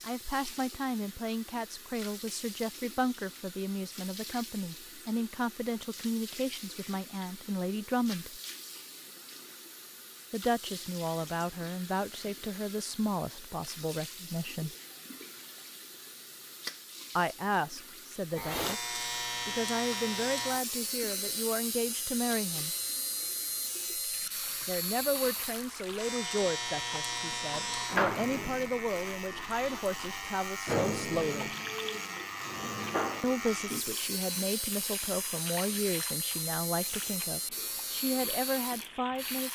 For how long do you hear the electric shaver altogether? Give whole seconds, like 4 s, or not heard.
21 s.